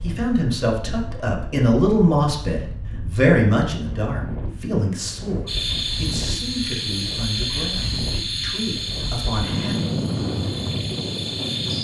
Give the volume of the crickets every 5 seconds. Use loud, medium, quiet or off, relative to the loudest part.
off, loud, loud.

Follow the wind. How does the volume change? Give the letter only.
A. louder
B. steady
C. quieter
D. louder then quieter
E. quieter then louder
A.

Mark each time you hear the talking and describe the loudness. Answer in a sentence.
You can hear the talking from 0.0 to 9.8 s, getting quieter.